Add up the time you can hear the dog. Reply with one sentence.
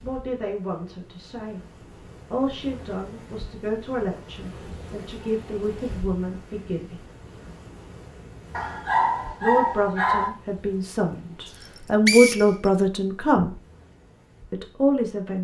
You can hear the dog for 2 seconds altogether.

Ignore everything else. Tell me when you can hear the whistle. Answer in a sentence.
You can hear the whistle from 11.6 to 12.7 s.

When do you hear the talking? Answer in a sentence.
You can hear the talking from 0.0 to 1.6 s, from 2.3 to 7.0 s, from 9.4 to 13.5 s and from 14.5 to 15.3 s.